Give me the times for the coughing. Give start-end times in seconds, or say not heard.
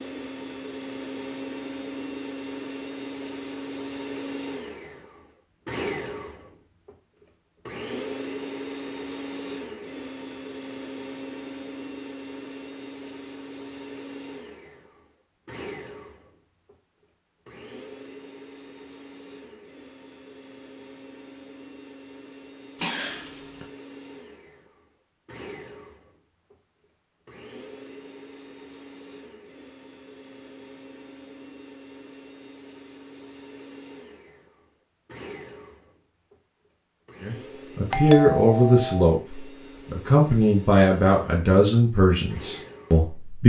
22.8-23.6.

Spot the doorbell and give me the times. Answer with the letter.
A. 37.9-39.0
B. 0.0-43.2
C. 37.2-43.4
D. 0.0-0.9
A.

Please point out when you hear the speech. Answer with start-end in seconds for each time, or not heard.
37.2-43.4.